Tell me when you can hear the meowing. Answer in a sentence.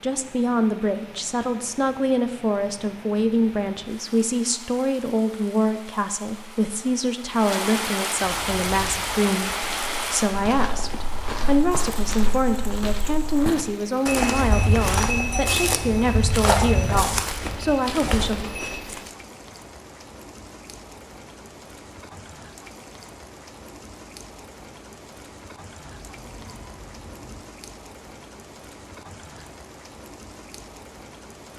The meowing can be heard from 25.9 to 27.4 s.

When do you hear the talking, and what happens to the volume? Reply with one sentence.
The talking can be heard from 0.0 to 18.4 s, at a steady volume.